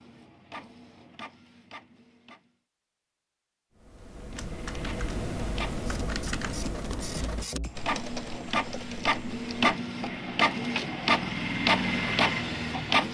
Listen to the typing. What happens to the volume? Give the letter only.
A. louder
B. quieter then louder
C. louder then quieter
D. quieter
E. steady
D.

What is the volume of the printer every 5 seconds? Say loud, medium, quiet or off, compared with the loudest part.
quiet, medium, loud.